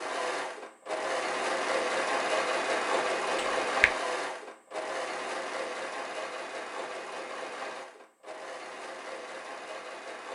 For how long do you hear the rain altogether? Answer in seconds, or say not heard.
not heard.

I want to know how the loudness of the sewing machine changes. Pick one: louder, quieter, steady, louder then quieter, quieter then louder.
quieter.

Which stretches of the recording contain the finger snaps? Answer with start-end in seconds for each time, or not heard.
3.4-3.9.